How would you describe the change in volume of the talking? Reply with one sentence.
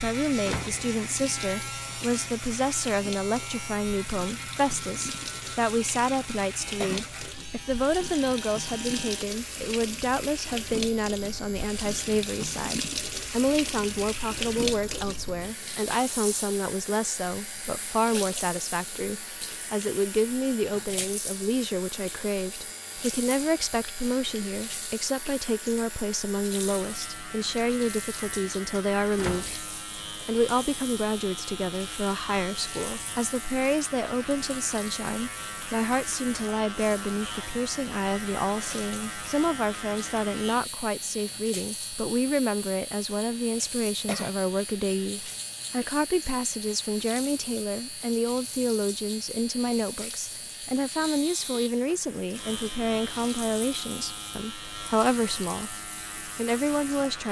The loudness of the talking stays about the same.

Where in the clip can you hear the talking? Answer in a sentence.
The talking can be heard from 0.0 to 57.2 s.